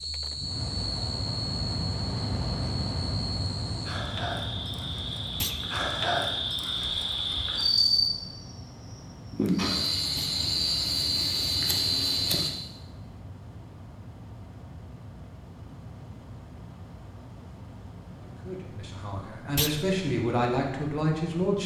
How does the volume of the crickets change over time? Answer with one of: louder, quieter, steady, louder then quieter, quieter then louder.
louder.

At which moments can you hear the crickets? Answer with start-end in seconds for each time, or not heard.
0.0-12.5.